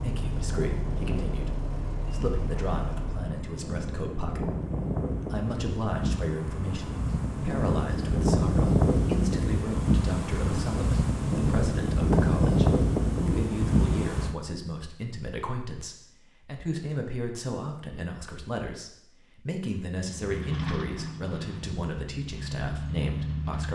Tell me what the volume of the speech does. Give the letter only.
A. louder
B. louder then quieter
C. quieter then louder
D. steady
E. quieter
D.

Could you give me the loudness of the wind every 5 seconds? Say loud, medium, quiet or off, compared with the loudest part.
medium, loud, loud, off, off.